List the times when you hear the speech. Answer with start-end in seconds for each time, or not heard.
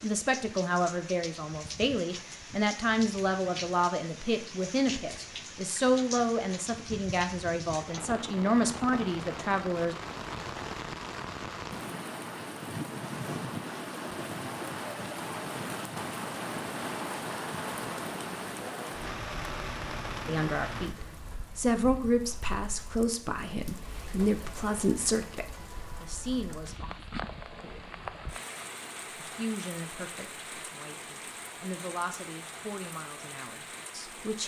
0.0-9.9, 20.2-27.1, 29.1-34.4.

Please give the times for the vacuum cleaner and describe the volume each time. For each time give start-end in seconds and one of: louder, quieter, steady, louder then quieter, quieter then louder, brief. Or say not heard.
not heard.